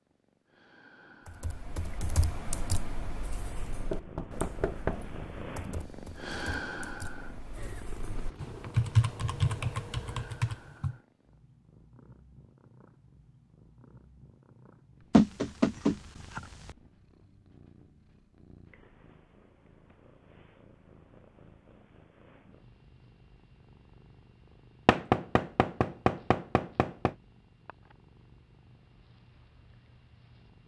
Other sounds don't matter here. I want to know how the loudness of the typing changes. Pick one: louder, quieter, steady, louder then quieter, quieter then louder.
quieter then louder.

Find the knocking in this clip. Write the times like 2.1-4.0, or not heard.
3.9-5.1, 15.1-16.8, 24.9-27.1.